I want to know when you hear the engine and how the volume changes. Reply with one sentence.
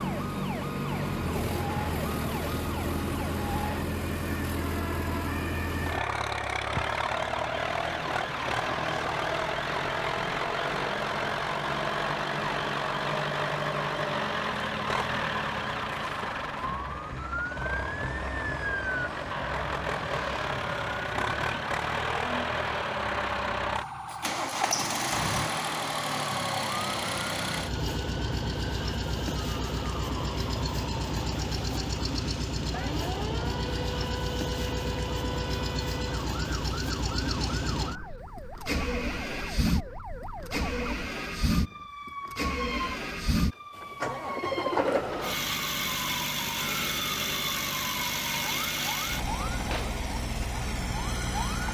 The engine can be heard from 0.0 to 51.6 s, at a steady volume.